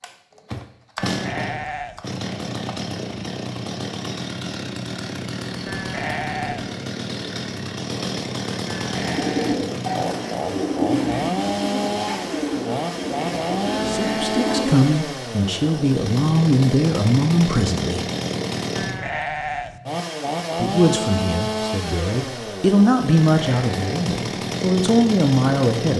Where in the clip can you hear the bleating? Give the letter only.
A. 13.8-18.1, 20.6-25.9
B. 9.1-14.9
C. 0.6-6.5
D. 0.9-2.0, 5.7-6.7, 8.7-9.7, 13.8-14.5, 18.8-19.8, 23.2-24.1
D.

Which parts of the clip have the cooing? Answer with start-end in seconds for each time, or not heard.
9.1-14.9.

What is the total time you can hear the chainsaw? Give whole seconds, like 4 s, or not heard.
26 s.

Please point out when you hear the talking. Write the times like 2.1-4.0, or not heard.
13.8-18.1, 20.6-25.9.